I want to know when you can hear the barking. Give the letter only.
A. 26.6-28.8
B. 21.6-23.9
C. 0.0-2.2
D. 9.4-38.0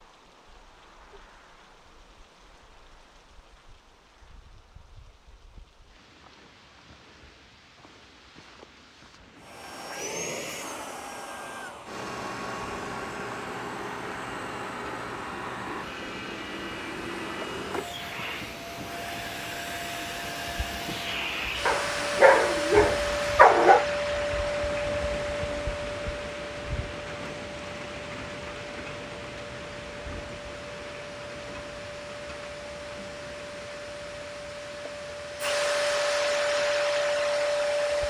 B.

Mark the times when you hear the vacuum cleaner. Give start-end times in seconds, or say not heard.
9.4-38.0.